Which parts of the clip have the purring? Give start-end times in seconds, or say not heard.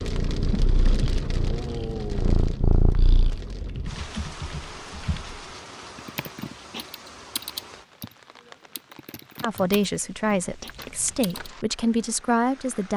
0.0-3.4.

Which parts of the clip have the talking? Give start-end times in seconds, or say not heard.
9.4-12.9.